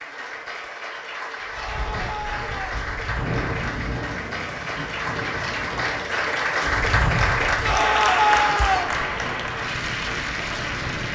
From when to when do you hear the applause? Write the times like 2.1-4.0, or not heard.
0.0-11.1.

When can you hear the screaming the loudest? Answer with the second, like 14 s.
8 s.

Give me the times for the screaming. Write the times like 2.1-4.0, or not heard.
1.5-2.8, 7.6-8.9.